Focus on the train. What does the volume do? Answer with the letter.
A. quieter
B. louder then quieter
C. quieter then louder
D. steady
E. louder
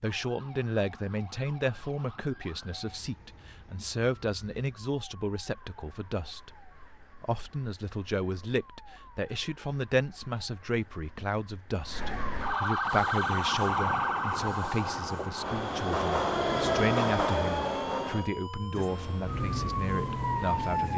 B.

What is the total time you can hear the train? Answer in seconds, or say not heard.
8 s.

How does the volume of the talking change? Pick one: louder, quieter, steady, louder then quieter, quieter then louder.
steady.